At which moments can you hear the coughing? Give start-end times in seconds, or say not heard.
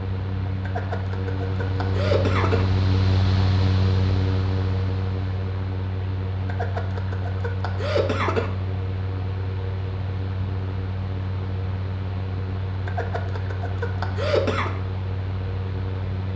0.7-2.6, 6.5-8.5, 12.8-14.7.